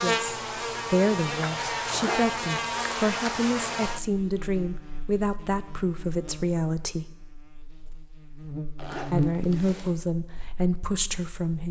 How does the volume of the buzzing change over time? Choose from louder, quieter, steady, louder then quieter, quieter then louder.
quieter then louder.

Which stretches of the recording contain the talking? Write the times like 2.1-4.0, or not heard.
0.0-7.0, 9.1-11.6.